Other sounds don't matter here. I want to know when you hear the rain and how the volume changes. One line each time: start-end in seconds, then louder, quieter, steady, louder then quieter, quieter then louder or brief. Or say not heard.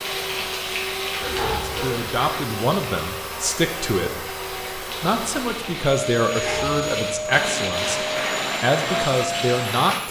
0.0-10.0 quieter then louder.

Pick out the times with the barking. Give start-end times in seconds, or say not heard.
1.2-2.0, 6.3-7.3.